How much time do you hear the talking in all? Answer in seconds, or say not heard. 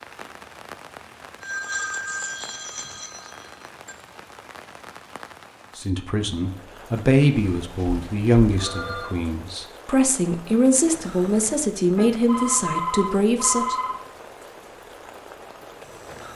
8 s.